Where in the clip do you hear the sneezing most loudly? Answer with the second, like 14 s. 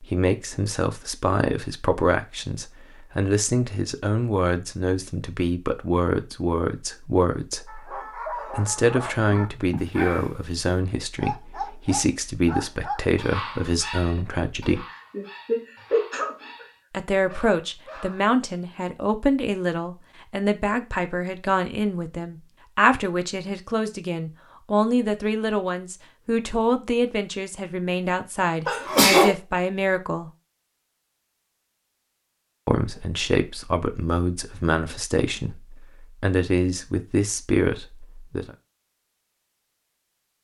29 s.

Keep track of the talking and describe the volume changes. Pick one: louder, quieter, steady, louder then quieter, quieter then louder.
steady.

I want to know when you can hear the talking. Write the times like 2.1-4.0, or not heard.
0.0-14.8, 16.9-30.3, 32.6-38.5.